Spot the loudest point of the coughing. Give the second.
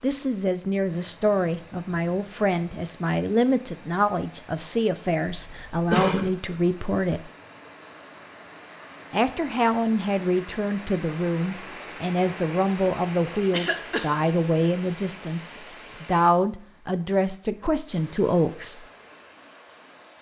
6 s.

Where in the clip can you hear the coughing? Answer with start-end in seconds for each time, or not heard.
5.3-6.3, 13.5-14.1.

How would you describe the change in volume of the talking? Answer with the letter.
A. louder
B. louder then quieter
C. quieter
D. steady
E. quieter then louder
D.